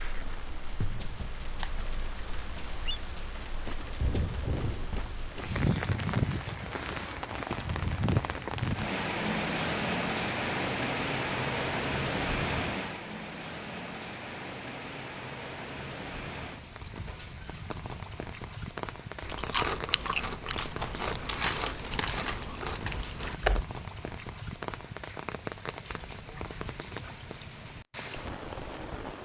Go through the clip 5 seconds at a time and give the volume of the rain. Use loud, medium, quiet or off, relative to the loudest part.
medium, loud, loud, medium, medium, medium.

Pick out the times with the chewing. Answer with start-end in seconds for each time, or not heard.
19.2-23.6.